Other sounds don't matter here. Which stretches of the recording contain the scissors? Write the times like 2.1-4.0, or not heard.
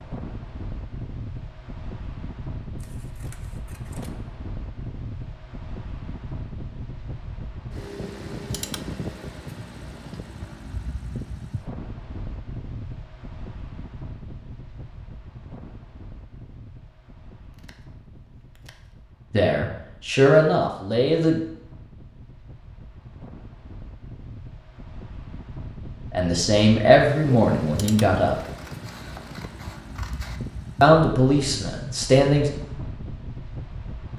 2.8-4.1, 17.5-18.9, 28.4-30.4.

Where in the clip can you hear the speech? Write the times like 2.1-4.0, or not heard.
19.3-21.4, 26.1-28.4, 30.8-32.5.